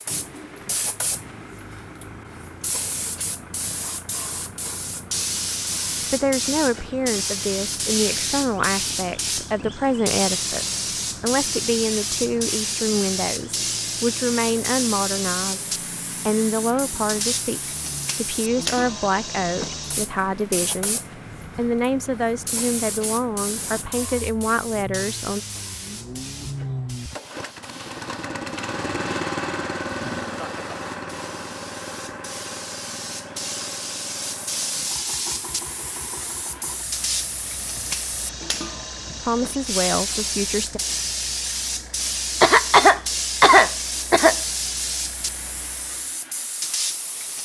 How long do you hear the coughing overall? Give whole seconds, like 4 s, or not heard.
2 s.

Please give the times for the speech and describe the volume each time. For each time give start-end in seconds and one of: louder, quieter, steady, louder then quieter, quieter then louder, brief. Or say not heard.
6.1-25.4 steady
39.2-40.8 brief.